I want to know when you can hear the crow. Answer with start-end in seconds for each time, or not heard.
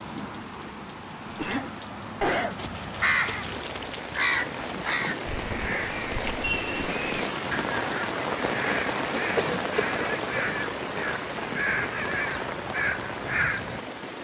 2.5-13.8.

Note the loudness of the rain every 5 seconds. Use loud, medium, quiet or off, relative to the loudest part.
medium, loud, loud.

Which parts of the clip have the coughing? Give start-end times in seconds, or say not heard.
1.2-2.5, 9.3-9.9.